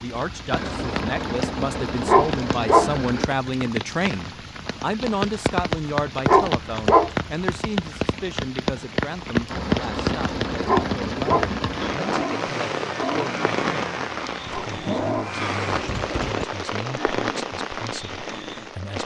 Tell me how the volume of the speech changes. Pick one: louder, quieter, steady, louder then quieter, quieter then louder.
quieter.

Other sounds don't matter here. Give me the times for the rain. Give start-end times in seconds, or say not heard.
0.0-19.0.